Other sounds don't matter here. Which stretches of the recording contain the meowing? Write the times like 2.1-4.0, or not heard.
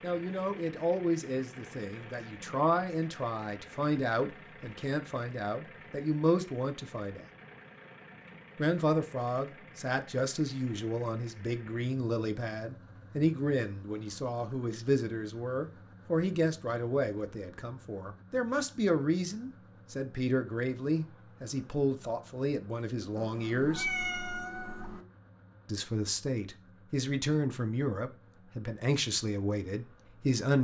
23.1-25.1.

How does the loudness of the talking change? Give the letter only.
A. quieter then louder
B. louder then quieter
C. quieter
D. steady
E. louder
D.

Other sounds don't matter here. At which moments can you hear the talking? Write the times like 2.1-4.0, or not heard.
0.0-7.2, 8.6-23.9, 25.6-30.5.